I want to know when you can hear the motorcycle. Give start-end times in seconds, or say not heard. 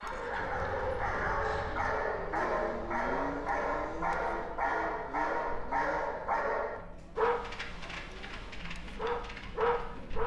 0.0-6.3.